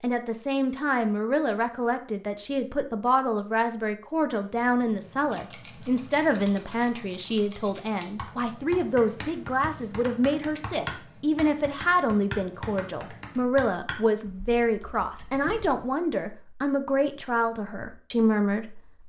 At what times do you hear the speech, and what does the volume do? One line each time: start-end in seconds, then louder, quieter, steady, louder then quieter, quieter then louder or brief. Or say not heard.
0.0-18.8 steady.